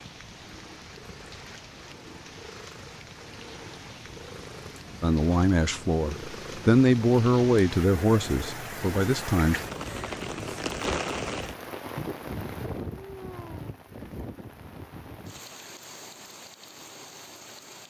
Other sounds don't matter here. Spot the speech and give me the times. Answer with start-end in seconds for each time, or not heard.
5.0-9.6.